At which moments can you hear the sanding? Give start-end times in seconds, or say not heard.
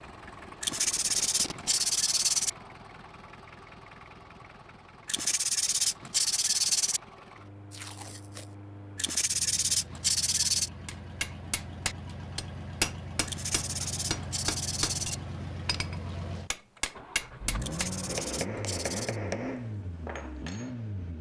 0.6-2.5, 5.0-7.0, 8.9-10.7, 13.2-15.2, 17.6-19.2.